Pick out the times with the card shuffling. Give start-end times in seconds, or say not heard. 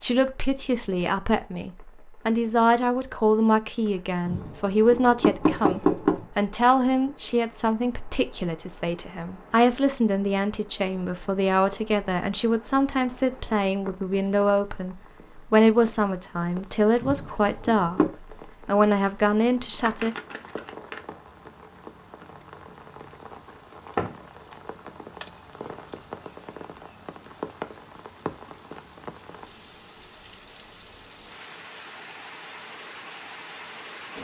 19.8-21.0.